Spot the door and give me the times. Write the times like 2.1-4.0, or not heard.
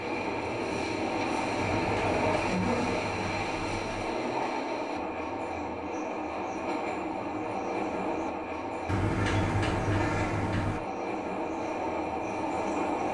1.6-4.2, 8.8-10.8.